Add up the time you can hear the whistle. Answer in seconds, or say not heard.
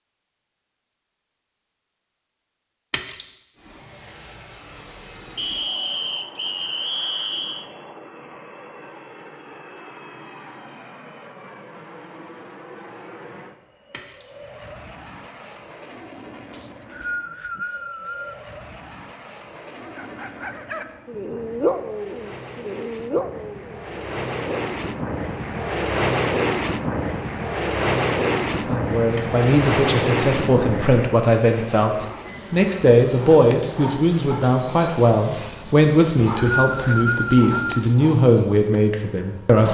6 s.